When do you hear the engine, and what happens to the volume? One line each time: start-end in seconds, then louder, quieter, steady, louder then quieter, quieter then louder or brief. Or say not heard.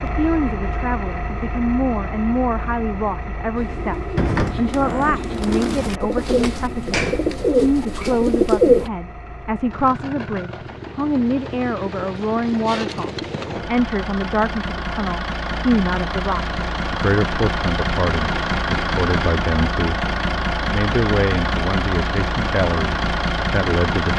0.0-24.1 quieter then louder.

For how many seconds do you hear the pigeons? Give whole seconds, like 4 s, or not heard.
5 s.